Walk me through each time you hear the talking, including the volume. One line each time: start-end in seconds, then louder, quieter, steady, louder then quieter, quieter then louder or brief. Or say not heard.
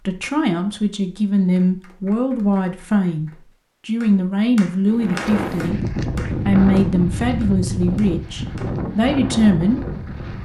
0.1-10.4 steady.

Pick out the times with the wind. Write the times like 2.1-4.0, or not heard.
4.8-10.4.